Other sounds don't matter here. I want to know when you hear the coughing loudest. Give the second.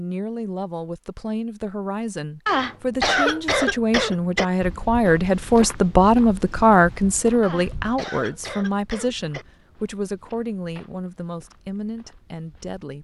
3 s.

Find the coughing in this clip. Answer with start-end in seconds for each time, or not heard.
2.5-4.5, 7.4-9.4.